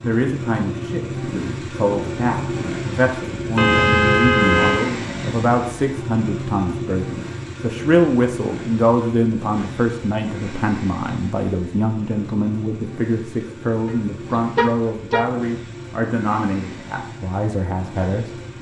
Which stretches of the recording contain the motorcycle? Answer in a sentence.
The motorcycle can be heard from 0.0 to 18.5 s.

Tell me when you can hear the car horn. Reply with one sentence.
You can hear the car horn from 3.5 to 4.9 s and from 13.8 to 15.3 s.